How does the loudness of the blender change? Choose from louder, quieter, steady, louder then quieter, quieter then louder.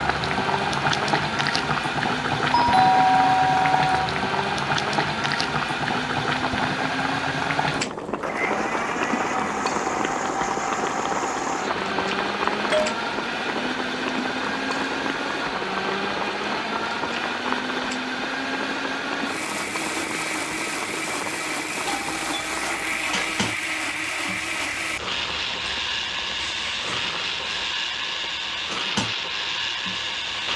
steady.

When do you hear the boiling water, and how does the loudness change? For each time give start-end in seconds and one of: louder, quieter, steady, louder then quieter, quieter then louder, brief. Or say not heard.
0.0-30.5 quieter.